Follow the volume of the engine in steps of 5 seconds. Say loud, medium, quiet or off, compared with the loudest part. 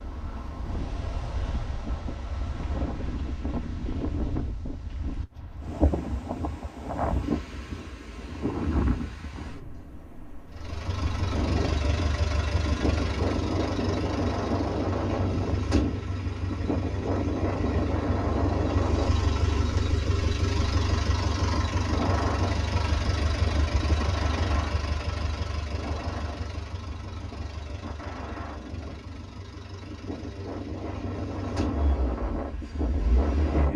off, off, loud, loud, loud, medium, medium.